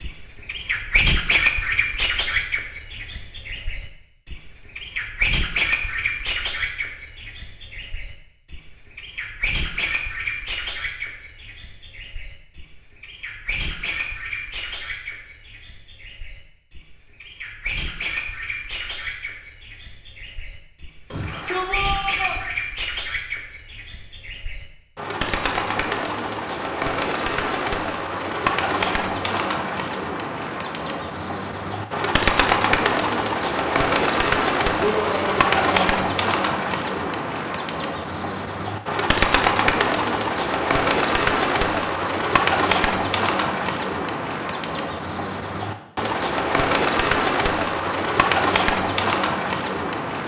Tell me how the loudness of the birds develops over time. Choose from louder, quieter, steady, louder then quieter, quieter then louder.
quieter then louder.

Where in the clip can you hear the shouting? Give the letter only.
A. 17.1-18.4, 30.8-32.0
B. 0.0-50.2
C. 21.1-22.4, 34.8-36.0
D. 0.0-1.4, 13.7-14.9
C.